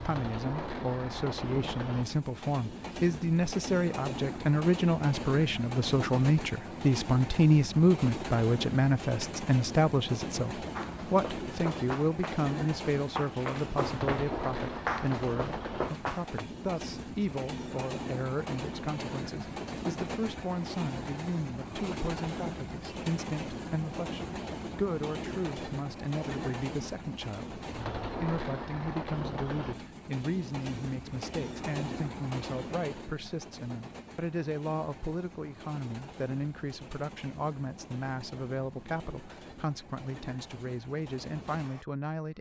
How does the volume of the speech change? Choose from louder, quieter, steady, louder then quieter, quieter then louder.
quieter.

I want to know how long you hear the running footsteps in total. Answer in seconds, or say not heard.
6 s.